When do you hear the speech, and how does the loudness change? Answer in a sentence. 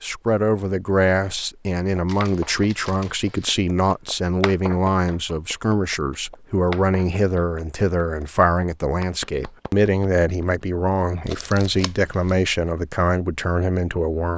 The speech can be heard from 0.0 to 14.3 s, at a steady volume.